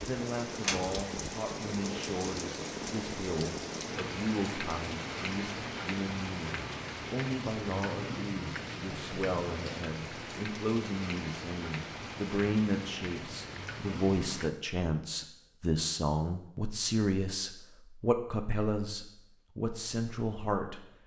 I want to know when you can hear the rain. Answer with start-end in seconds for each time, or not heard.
0.0-14.5.